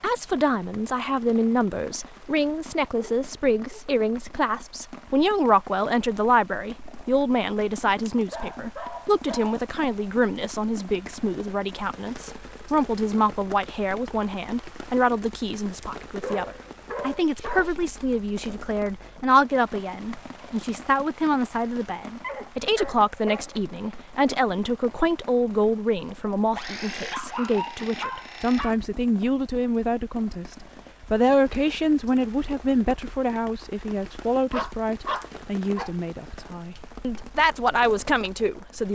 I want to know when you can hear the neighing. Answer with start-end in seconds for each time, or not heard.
not heard.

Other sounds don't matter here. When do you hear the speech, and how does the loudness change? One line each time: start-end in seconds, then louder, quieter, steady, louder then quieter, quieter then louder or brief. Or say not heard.
0.0-38.9 steady.